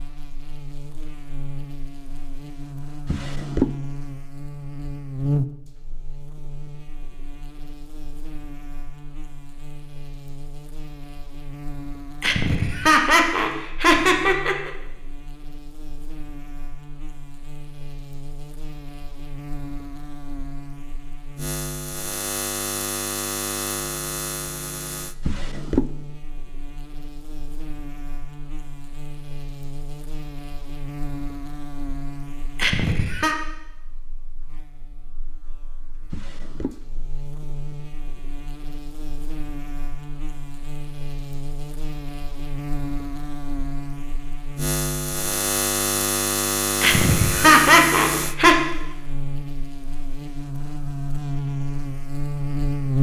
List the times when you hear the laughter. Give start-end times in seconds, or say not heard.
12.2-14.7, 32.5-33.4, 46.8-48.5.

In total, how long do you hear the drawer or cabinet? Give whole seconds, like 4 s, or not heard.
2 s.